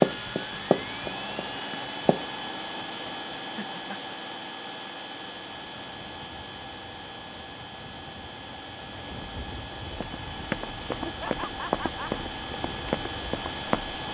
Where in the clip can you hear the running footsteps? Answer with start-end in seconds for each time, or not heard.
0.0-2.2, 9.9-14.0.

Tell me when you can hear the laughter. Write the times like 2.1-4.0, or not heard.
3.5-4.2, 11.1-12.2.